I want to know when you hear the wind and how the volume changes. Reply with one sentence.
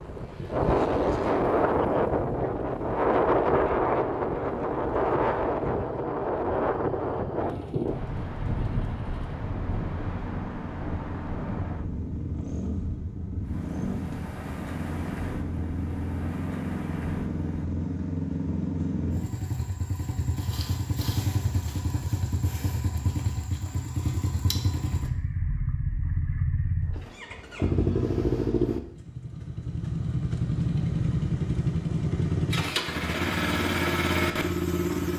You can hear the wind from 0.0 to 17.6 s, getting quieter.